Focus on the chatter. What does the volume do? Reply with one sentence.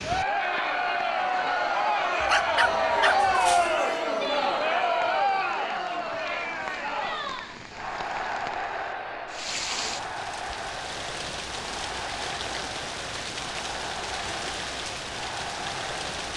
The loudness of the chatter goes down.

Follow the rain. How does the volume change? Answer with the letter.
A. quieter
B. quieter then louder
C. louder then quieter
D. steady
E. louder
E.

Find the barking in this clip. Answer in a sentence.
You can hear the barking from 2.2 to 3.8 s.